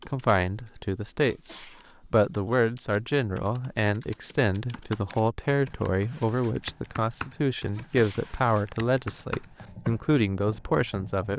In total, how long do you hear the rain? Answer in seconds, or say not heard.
not heard.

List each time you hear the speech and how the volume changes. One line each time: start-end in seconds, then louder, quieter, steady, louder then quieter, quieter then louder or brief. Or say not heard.
0.1-11.3 steady.